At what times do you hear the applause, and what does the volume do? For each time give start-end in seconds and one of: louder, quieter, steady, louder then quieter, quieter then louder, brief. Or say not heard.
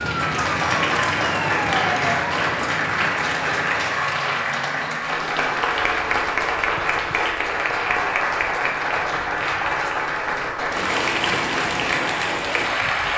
0.0-13.1 steady.